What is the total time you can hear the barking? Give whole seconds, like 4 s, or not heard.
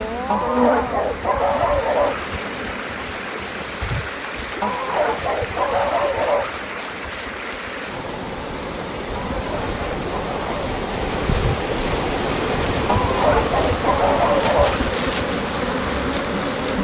8 s.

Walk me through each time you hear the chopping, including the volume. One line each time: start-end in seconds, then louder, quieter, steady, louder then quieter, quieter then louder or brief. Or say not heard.
not heard.